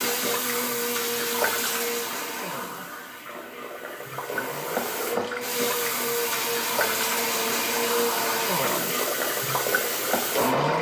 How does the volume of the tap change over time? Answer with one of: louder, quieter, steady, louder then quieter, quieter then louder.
quieter then louder.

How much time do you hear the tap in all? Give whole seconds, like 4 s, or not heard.
11 s.